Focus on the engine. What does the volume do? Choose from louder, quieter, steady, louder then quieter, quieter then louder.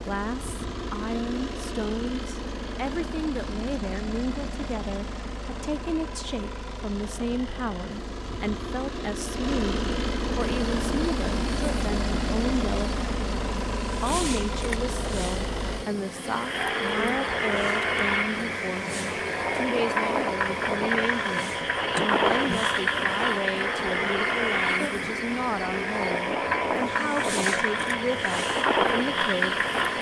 louder.